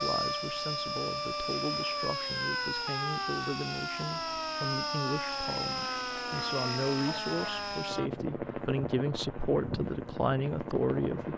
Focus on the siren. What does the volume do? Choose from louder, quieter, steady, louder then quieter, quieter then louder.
steady.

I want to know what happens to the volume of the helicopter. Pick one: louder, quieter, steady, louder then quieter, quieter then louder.
steady.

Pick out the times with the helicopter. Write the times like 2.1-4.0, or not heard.
0.0-11.3.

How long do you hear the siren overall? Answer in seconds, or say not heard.
8 s.